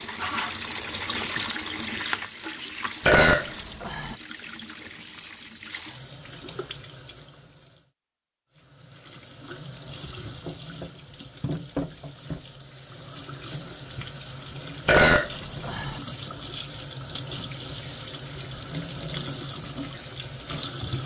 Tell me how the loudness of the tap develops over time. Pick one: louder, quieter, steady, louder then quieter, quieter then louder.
quieter then louder.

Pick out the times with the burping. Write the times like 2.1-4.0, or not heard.
3.0-4.2, 14.8-16.0.